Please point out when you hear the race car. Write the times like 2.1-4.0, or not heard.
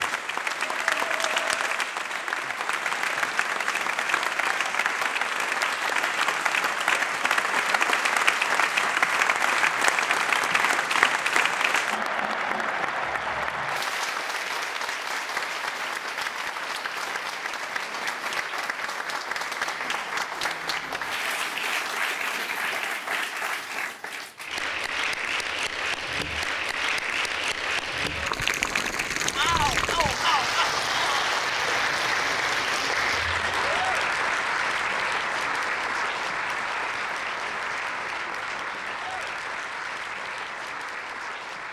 not heard.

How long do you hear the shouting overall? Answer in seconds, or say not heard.
2 s.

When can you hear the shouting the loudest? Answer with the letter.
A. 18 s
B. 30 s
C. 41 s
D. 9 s
B.